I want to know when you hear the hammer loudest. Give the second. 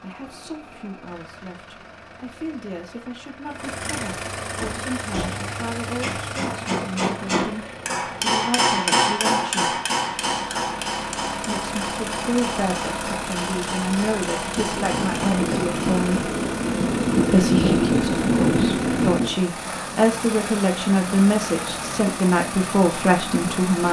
9 s.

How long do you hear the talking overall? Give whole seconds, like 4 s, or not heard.
21 s.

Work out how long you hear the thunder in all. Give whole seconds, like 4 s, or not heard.
5 s.